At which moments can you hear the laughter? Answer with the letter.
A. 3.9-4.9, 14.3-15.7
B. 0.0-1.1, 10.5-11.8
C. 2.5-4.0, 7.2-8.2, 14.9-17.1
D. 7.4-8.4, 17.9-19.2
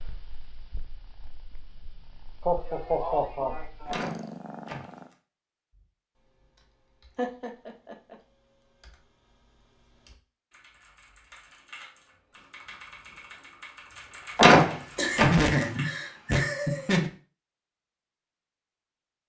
C.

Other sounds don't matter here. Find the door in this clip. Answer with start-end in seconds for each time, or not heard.
3.9-4.9, 14.3-15.7.